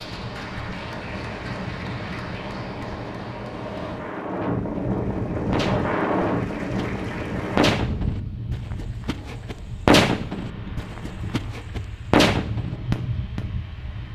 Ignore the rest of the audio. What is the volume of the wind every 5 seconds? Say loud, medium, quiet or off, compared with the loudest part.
loud, loud, medium.